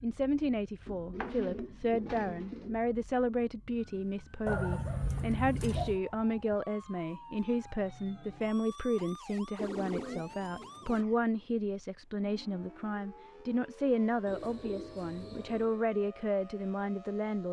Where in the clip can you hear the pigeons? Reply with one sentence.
The pigeons can be heard from 0.8 to 2.8 s, from 4.5 to 6.0 s, from 9.6 to 11.1 s and from 14.2 to 15.8 s.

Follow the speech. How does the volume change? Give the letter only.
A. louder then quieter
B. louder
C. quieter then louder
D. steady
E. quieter
D.